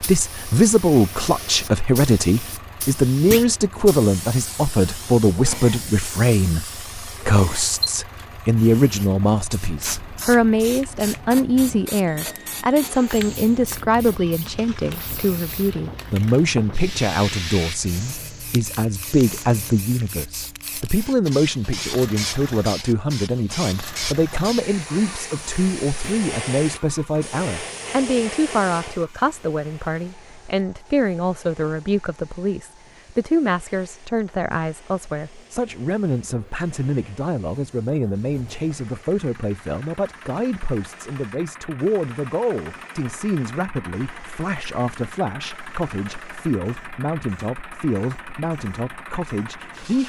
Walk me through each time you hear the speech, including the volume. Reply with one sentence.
The speech can be heard from 0.0 to 50.0 s, getting quieter.